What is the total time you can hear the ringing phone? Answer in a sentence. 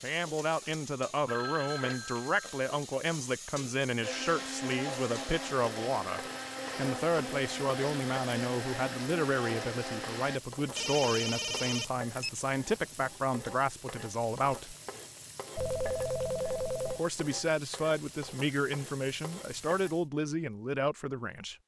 You can hear the ringing phone for 5 seconds altogether.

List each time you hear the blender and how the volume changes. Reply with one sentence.
You can hear the blender from 4.0 to 10.4 s, at a steady volume.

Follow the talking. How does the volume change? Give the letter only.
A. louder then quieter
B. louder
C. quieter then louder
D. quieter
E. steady
E.